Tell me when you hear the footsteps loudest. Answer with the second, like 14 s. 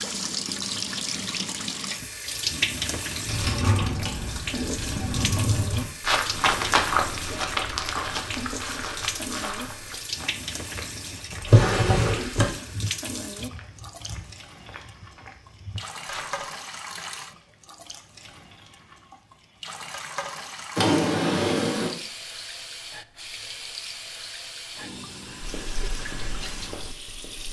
7 s.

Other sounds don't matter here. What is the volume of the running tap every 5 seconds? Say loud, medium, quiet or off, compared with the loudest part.
loud, loud, medium, medium, medium, medium.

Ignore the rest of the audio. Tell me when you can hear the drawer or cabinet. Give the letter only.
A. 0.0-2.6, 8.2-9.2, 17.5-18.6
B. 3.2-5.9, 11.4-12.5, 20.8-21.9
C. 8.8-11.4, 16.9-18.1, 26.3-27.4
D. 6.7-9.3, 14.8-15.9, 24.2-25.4
B.